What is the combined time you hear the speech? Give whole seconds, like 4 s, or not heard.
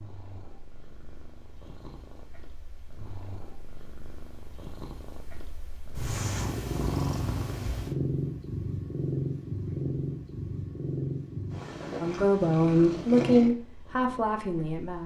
3 s.